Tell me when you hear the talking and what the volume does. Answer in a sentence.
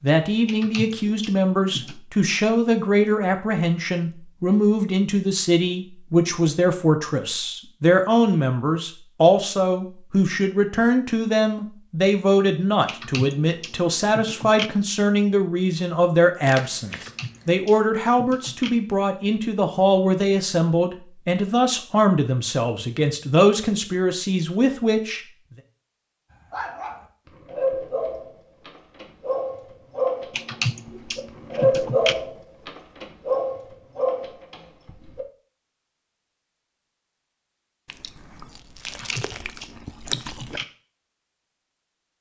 The talking can be heard from 0.0 to 25.2 s, at a steady volume.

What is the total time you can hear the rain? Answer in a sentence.
You can't hear the rain here.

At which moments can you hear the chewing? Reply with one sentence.
The chewing can be heard from 16.4 to 17.6 s and from 37.9 to 40.6 s.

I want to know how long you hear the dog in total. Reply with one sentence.
The dog can be heard for 9 seconds in total.